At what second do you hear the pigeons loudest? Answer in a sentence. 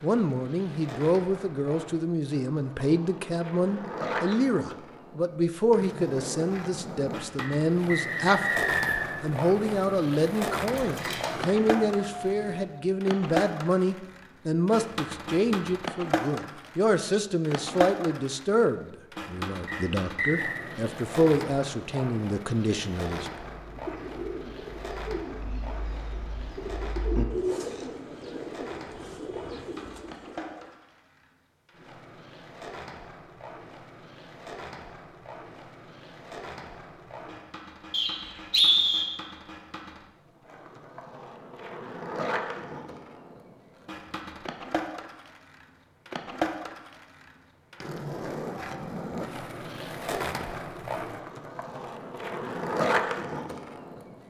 The loudest moment of the pigeons is at 27 seconds.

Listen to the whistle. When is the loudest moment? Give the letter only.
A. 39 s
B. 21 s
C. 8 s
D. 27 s
A.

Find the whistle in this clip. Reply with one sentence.
You can hear the whistle from 7.3 to 9.2 s, from 19.6 to 20.6 s and from 37.9 to 39.0 s.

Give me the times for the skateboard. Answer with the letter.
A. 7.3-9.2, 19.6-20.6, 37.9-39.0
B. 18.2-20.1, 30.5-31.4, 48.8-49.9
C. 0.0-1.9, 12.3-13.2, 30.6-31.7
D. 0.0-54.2
D.